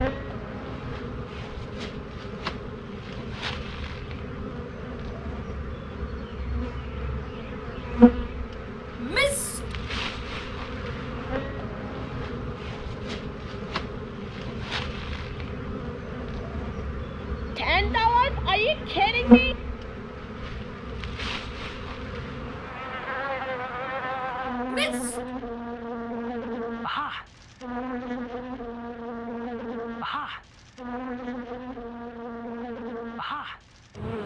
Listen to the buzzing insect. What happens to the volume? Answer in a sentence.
The loudness of the buzzing insect goes up, then down.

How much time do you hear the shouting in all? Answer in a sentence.
You can hear the shouting for 3 seconds altogether.